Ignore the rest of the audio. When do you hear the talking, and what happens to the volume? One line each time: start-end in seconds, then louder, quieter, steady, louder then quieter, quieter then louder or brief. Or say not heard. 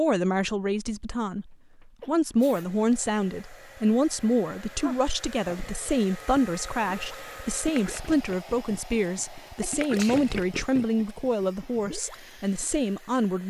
0.0-13.4 steady.